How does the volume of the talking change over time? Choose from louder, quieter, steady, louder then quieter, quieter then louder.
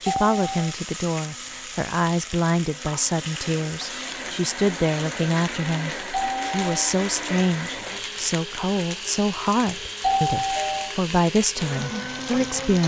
steady.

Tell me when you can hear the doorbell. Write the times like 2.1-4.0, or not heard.
0.1-0.8, 6.1-7.0, 10.0-10.9.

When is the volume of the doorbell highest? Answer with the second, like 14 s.
10 s.